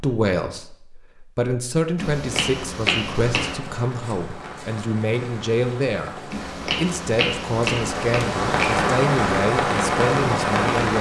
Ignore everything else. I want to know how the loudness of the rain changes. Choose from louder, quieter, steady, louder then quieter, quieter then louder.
louder.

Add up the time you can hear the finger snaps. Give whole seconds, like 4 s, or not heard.
4 s.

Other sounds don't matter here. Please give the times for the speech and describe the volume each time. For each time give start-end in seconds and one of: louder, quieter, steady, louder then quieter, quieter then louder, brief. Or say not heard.
0.0-10.9 steady.